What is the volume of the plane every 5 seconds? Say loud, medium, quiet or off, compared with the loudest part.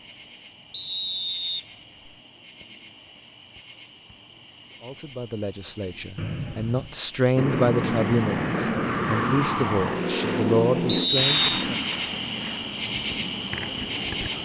off, loud, medium.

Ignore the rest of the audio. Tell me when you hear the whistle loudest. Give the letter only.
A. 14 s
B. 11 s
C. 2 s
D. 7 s
B.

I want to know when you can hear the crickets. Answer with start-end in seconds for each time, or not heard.
0.0-14.4.